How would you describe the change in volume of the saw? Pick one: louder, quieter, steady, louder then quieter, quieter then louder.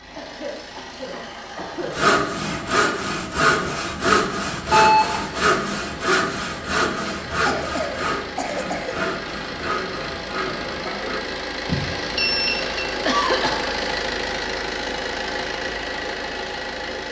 quieter.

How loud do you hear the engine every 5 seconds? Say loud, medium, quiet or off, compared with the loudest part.
medium, medium, loud, loud.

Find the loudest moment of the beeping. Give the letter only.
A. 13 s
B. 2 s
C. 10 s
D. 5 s
D.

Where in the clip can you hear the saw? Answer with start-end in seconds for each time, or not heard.
1.8-11.3.